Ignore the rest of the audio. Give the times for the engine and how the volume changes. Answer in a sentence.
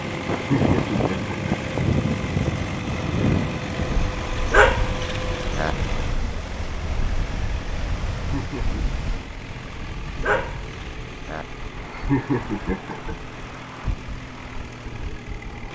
The engine can be heard from 0.0 to 15.7 s, getting quieter.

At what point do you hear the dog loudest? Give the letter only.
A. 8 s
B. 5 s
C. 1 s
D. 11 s
B.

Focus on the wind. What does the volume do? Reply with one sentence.
The volume of the wind goes down.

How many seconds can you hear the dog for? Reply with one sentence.
You can hear the dog for 3 seconds altogether.